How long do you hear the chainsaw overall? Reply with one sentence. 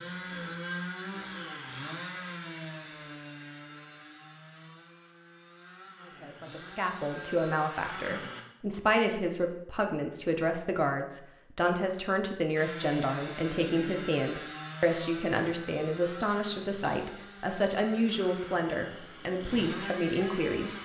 The chainsaw can be heard for 17 seconds in total.